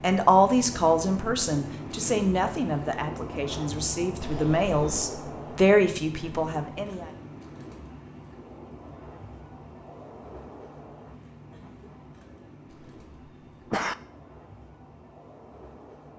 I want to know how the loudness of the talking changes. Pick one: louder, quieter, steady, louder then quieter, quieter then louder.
quieter then louder.